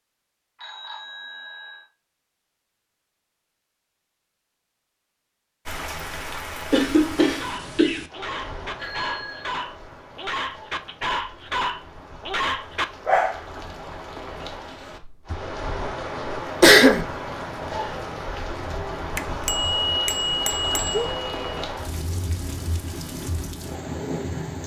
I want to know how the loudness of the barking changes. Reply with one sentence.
The volume of the barking goes up.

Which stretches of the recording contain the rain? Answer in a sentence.
You can hear the rain from 5.7 to 24.6 s.